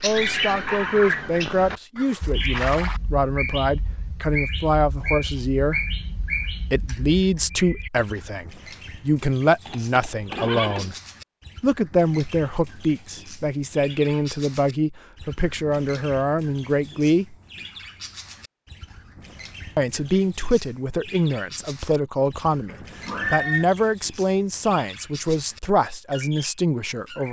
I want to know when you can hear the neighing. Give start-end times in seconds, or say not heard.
1.9-3.0, 9.7-10.9, 22.6-23.6.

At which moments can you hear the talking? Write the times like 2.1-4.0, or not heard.
0.0-5.8, 6.7-10.9, 11.6-17.4, 19.8-27.2.